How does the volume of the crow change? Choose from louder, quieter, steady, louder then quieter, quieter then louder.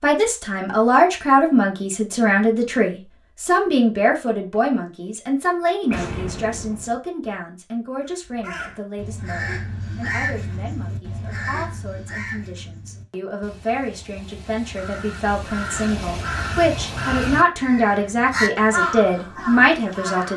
quieter then louder.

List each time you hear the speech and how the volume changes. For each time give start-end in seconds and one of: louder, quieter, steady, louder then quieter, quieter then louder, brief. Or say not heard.
0.0-20.3 quieter then louder.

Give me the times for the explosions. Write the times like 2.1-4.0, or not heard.
5.9-7.0.